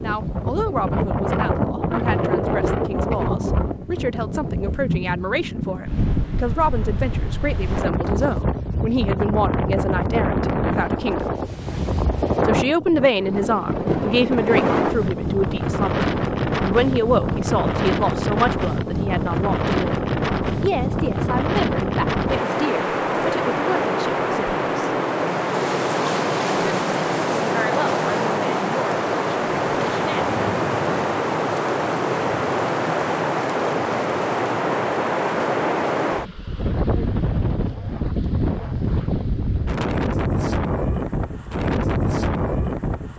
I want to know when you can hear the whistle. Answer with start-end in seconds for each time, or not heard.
not heard.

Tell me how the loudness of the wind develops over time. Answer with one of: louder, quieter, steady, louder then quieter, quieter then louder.
steady.